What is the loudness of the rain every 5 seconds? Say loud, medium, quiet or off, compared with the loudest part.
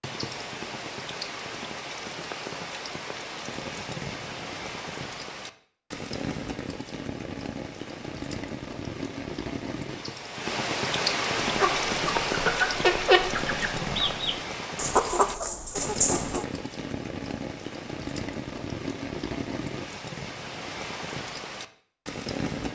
medium, medium, loud, medium, medium.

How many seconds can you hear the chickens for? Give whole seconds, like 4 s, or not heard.
5 s.